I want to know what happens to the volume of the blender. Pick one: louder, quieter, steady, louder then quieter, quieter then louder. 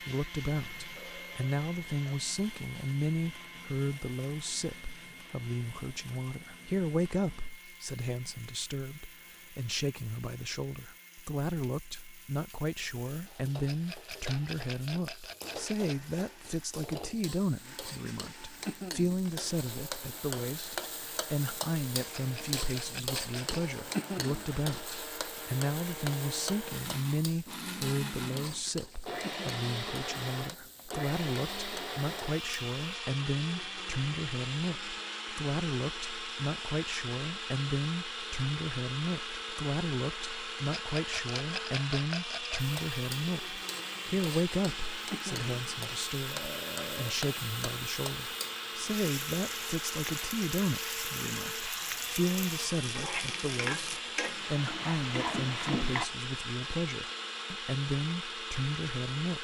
louder.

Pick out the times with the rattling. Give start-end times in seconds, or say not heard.
13.7-16.1, 22.1-23.6, 40.8-42.8.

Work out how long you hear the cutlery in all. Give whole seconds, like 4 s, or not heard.
not heard.